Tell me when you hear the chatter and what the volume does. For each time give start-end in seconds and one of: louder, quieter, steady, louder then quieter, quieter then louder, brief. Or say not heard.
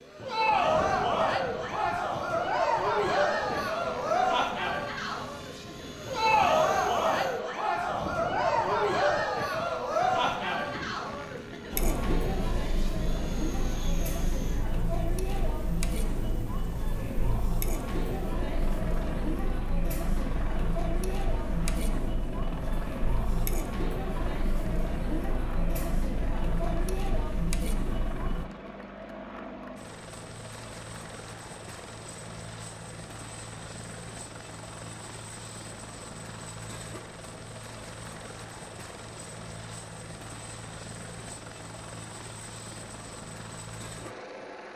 0.1-28.4 quieter.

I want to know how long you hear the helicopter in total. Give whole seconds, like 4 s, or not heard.
45 s.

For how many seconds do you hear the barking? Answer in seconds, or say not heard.
not heard.